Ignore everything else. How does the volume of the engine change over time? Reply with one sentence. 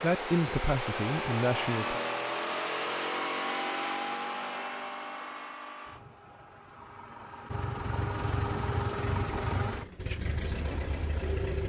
The loudness of the engine goes down, then up.